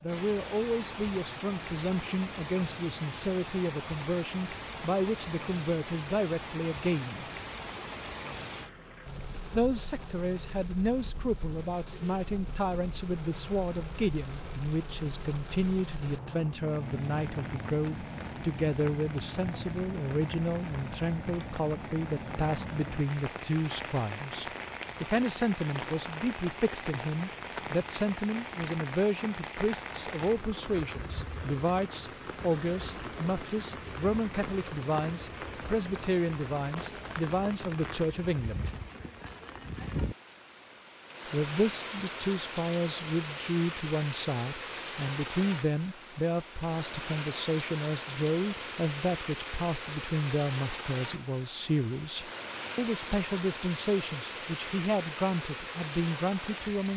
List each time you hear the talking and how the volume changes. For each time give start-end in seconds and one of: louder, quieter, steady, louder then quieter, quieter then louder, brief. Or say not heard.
0.0-7.2 steady
9.5-38.7 steady
41.3-56.9 steady.